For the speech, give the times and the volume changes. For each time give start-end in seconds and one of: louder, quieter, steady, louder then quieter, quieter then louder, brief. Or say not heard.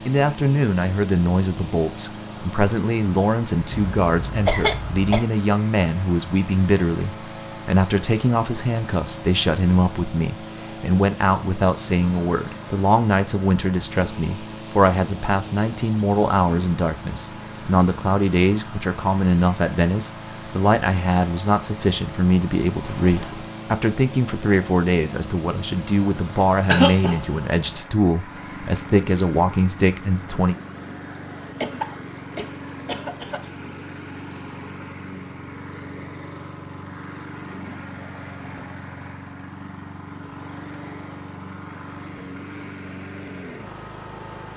0.1-30.6 steady.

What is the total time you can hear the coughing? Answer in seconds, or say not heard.
4 s.